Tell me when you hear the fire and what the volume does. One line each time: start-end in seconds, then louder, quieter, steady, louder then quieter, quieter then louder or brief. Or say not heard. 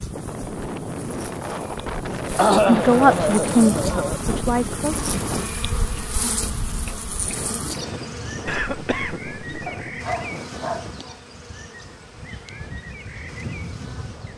not heard.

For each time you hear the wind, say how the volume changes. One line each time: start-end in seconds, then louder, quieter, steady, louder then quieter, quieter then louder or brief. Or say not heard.
0.0-14.3 quieter.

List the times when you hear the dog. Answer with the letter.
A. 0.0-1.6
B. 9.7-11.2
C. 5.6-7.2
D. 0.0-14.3
B.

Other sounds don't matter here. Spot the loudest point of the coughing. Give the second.
3 s.